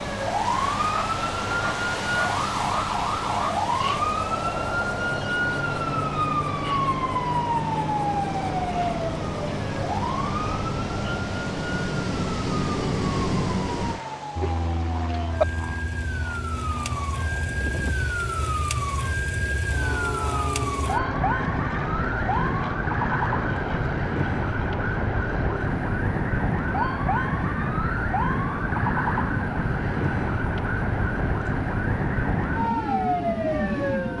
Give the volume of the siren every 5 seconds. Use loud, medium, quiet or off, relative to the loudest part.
loud, loud, medium, loud, loud, loud, loud.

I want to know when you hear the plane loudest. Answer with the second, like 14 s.
13 s.